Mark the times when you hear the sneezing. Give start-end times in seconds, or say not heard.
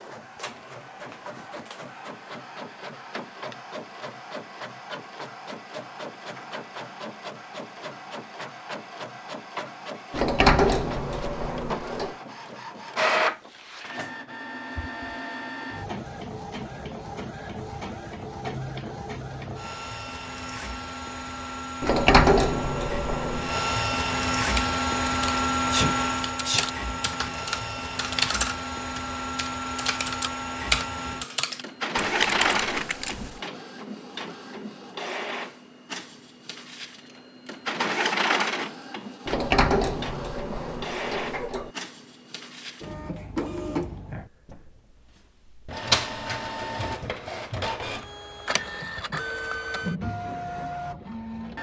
25.7-26.7.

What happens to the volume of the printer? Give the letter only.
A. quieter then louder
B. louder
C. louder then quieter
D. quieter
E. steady
B.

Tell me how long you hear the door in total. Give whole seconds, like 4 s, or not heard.
6 s.